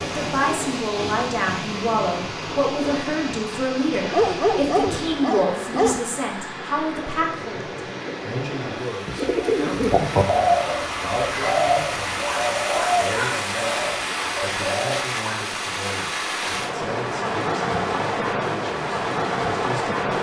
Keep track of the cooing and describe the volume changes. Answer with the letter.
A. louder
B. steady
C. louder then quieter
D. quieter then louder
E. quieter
E.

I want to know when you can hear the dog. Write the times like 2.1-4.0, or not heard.
4.1-6.0.